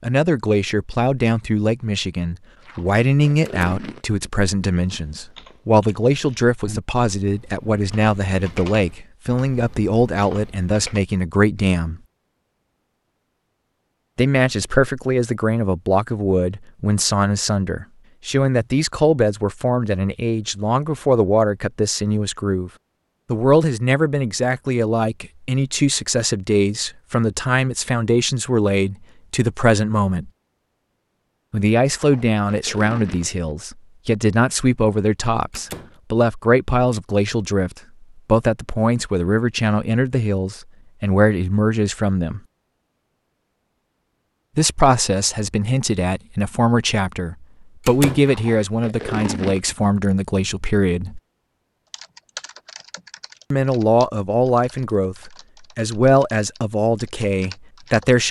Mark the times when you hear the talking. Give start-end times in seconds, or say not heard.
0.0-12.0, 14.2-22.7, 23.3-30.3, 31.5-42.4, 44.5-51.2, 53.5-58.2.